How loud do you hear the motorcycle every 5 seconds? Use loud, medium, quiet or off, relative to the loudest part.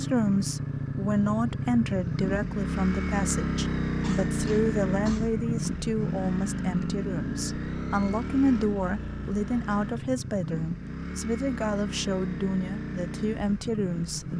loud, loud, medium.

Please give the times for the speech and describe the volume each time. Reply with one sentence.
You can hear the speech from 0.0 to 14.3 s, at a steady volume.